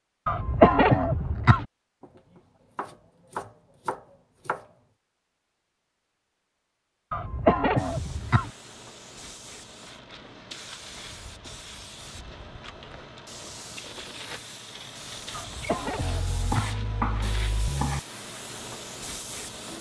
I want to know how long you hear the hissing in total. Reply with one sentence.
You can hear the hissing for 12 seconds altogether.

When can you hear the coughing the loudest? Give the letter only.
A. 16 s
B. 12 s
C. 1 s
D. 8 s
C.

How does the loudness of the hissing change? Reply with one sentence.
The volume of the hissing goes up.